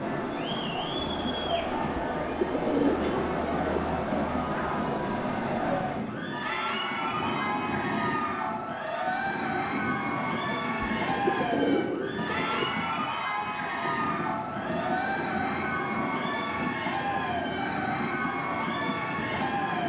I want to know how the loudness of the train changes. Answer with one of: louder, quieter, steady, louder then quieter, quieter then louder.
steady.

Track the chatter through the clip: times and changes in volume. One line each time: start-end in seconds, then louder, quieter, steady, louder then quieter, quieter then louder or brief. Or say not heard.
0.0-19.8 steady.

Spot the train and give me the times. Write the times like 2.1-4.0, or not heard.
0.0-19.8.